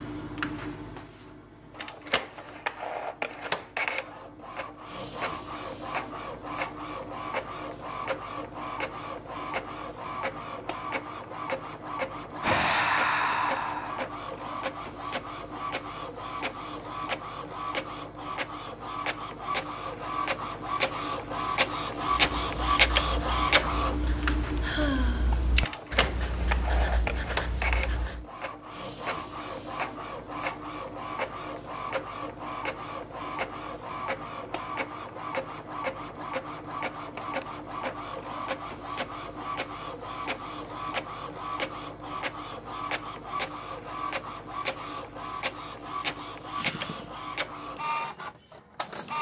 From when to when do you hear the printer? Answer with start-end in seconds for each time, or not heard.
0.0-49.1.